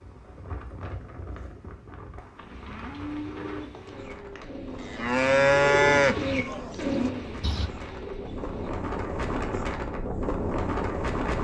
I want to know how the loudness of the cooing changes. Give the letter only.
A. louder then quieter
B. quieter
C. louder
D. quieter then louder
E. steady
A.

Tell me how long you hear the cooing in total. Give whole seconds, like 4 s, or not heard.
6 s.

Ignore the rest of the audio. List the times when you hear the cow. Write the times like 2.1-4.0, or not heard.
2.4-7.7.